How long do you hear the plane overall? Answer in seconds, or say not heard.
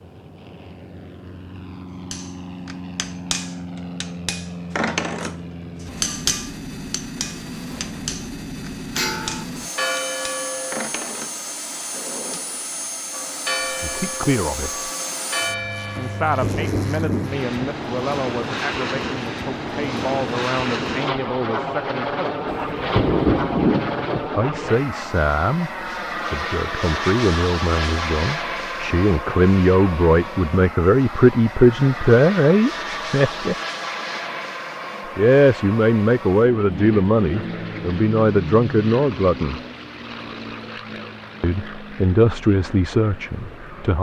44 s.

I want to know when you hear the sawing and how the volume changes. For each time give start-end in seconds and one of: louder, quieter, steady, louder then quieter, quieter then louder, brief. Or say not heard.
not heard.